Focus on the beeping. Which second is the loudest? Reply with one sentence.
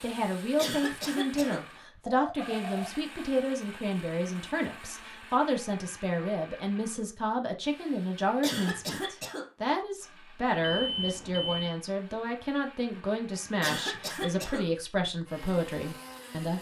The volume of the beeping peaks at 11 seconds.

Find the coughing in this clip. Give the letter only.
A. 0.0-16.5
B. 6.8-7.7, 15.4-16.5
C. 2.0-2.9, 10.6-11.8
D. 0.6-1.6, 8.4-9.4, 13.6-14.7
D.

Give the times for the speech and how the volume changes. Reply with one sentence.
You can hear the speech from 0.0 to 16.5 s, at a steady volume.